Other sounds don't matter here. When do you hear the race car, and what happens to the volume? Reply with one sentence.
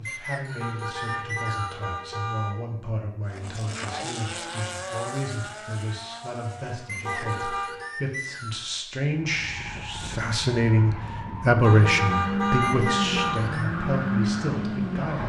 You can hear the race car from 3.2 to 7.8 s, getting quieter; and from 9.1 to 15.2 s, getting louder.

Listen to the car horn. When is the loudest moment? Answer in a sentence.
The loudest moment of the car horn is at 13 seconds.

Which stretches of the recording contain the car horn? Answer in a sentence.
You can hear the car horn from 0.6 to 2.6 s, from 7.0 to 8.0 s and from 11.6 to 13.4 s.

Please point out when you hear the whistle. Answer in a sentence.
The whistle can be heard from 0.1 to 1.8 s, from 6.8 to 8.7 s and from 12.6 to 13.7 s.